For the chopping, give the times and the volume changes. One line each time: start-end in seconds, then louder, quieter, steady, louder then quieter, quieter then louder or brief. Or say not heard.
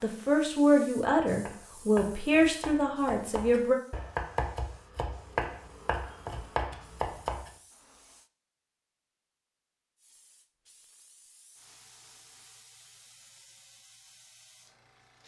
1.4-7.5 louder.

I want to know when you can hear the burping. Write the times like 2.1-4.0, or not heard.
not heard.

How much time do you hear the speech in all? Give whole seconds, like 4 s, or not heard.
4 s.